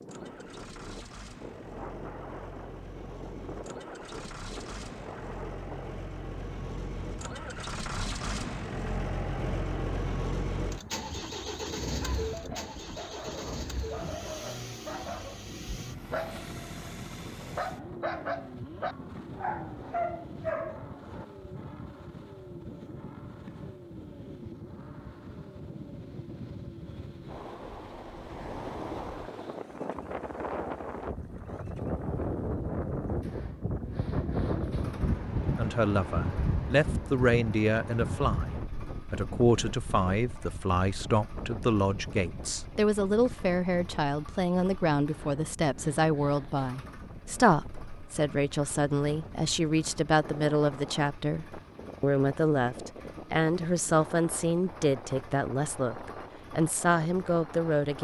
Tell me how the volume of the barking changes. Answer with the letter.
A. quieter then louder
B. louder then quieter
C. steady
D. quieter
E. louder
E.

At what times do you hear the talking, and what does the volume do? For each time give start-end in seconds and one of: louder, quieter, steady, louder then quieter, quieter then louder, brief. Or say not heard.
35.5-57.9 steady.